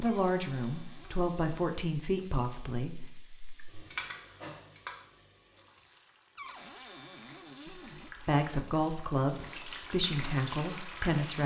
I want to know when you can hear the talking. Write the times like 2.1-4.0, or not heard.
0.0-3.0, 7.7-11.4.